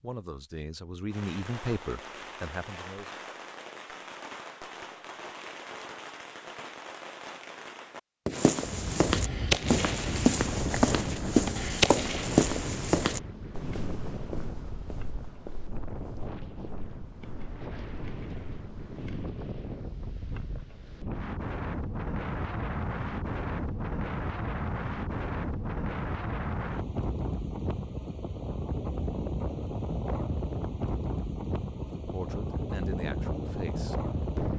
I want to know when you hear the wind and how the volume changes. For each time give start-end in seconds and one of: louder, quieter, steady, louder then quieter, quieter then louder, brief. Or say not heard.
8.6-34.5 quieter then louder.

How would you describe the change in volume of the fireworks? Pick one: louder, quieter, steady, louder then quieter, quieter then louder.
louder.